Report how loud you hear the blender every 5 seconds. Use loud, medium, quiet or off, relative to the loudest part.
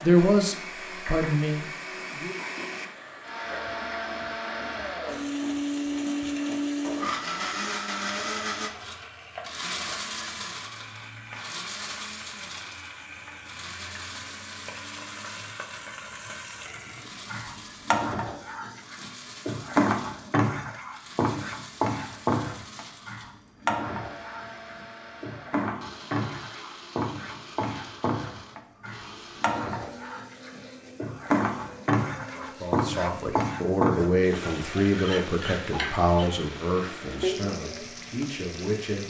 medium, loud, medium, quiet, quiet, quiet, quiet, quiet.